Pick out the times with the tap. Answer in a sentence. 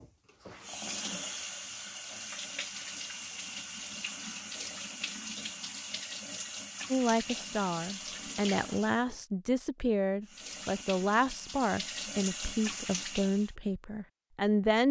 You can hear the tap from 0.0 to 9.2 s and from 10.2 to 13.5 s.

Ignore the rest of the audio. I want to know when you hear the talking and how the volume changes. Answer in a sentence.
You can hear the talking from 6.9 to 14.8 s, at a steady volume.